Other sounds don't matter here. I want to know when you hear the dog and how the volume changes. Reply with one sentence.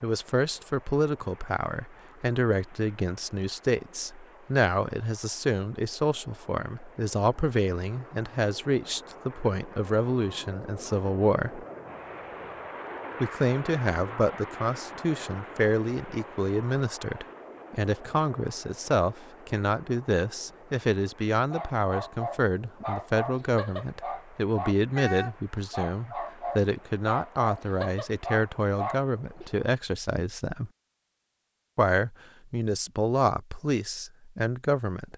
You can hear the dog from 21.5 to 29.5 s, at a steady volume.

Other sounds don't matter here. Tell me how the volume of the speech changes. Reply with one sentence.
The volume of the speech stays about the same.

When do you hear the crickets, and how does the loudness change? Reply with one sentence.
The crickets can't be heard in this clip.